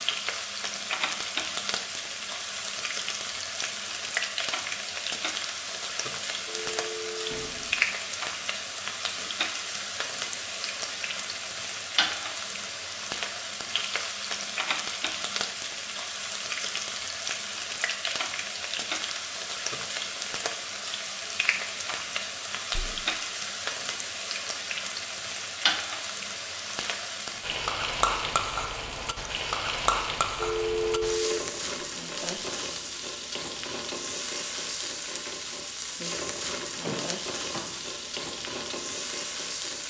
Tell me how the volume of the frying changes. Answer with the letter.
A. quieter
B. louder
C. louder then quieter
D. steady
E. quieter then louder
D.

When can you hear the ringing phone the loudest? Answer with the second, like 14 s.
31 s.